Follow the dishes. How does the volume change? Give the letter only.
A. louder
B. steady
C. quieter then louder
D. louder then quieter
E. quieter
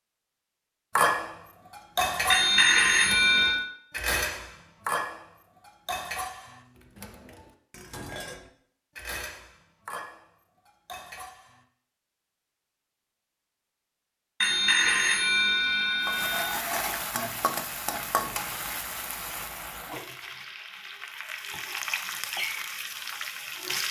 E.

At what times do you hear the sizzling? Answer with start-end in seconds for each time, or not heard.
16.0-23.8.